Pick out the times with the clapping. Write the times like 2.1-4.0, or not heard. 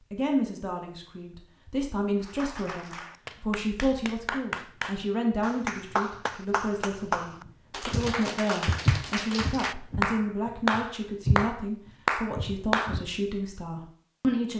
2.2-13.0.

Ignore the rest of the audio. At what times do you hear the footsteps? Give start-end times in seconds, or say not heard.
7.5-13.1.